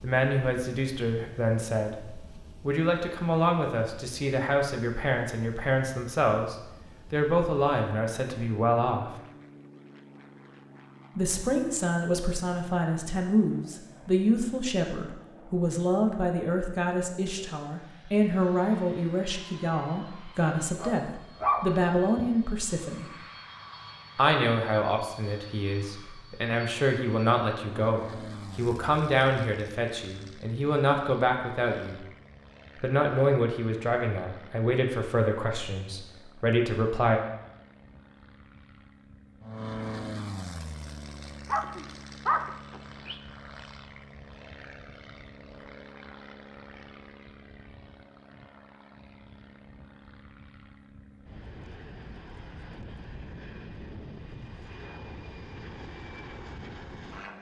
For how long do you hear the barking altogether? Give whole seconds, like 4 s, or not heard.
3 s.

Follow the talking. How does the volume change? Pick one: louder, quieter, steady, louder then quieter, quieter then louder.
steady.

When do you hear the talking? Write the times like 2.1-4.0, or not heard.
0.0-9.1, 11.2-23.1, 24.1-32.0, 32.8-37.2.